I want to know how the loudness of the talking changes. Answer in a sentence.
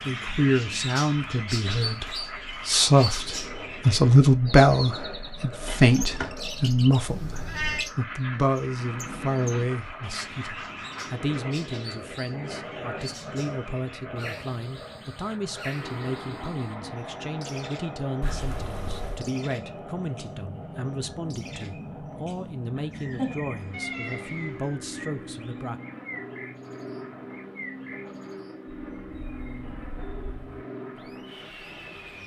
The volume of the talking goes down.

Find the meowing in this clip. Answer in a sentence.
The meowing can be heard from 7.0 to 7.9 s, from 18.2 to 19.2 s and from 23.7 to 24.6 s.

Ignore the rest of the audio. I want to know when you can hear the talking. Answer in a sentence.
The talking can be heard from 0.1 to 25.8 s.